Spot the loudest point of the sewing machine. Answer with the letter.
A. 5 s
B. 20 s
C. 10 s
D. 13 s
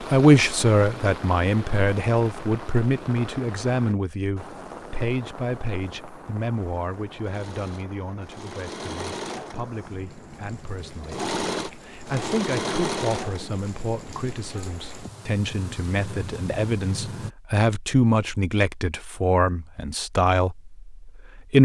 D.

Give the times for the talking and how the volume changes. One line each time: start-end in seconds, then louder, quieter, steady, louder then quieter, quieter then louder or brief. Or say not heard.
0.0-21.6 quieter then louder.